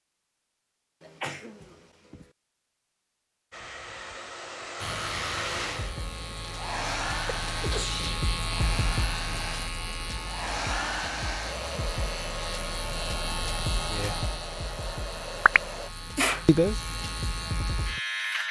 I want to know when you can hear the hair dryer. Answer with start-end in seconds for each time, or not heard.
3.5-15.9.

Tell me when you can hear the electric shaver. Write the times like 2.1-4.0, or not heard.
4.8-18.4.